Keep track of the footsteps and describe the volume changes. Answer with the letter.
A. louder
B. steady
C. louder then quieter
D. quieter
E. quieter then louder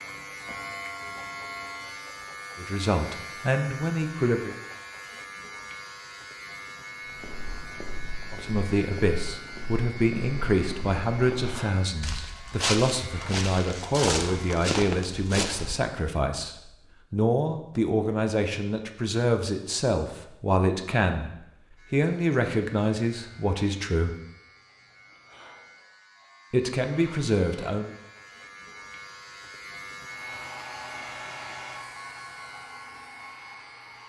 A.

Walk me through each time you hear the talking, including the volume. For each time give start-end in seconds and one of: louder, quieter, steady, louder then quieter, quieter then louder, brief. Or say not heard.
2.5-4.5 brief
8.3-24.1 steady
26.5-27.9 brief.